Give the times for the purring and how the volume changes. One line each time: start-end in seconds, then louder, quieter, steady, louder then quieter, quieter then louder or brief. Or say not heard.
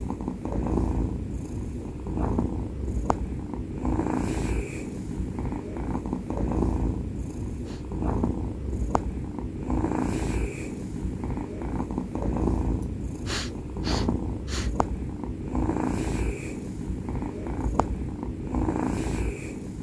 0.0-19.7 steady.